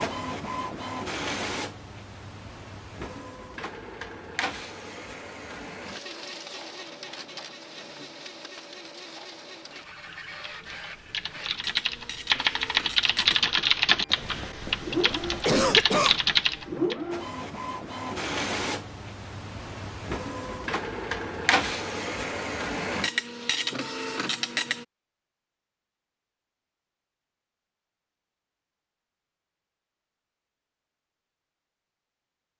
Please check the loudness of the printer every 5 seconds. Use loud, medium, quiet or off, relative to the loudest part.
medium, medium, medium, loud, loud, off, off.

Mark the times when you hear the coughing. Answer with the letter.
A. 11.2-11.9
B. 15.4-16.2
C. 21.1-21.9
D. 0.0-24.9
B.